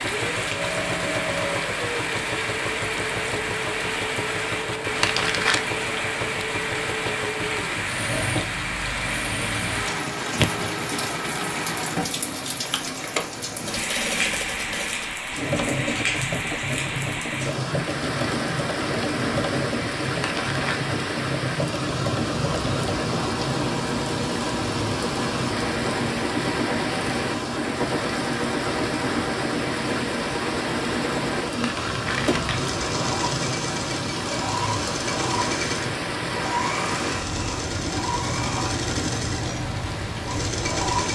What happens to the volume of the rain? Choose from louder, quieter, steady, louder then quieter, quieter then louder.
steady.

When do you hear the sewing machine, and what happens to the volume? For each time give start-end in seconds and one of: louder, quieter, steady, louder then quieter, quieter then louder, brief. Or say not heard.
0.0-41.1 steady.